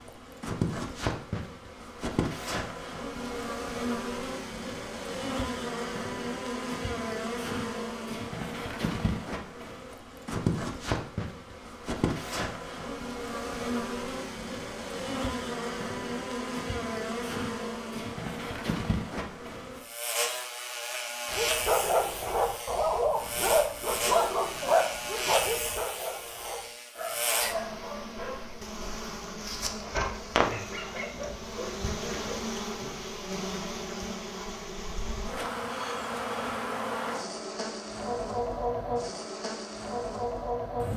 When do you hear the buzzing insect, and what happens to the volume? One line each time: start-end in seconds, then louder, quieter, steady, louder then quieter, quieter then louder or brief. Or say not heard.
0.0-40.9 steady.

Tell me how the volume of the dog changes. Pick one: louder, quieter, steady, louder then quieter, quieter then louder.
quieter.